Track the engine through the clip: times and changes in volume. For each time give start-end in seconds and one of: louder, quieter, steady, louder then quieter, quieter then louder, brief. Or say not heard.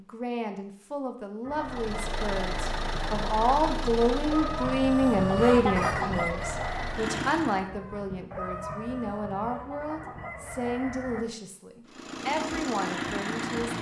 1.6-7.7 quieter then louder
11.8-13.7 brief.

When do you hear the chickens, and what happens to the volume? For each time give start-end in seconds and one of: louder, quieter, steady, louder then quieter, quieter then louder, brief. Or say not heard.
1.4-11.2 louder then quieter.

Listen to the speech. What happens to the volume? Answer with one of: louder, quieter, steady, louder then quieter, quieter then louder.
louder then quieter.